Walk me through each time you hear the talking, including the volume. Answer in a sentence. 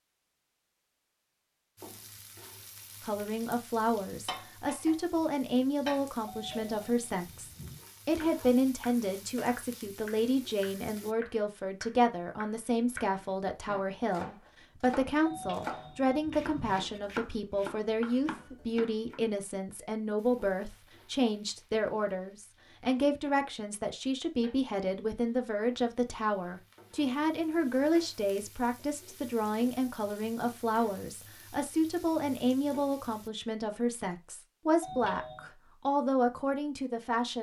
The talking can be heard from 3.0 to 37.3 s, at a steady volume.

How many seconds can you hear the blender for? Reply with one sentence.
You can't hear the blender here.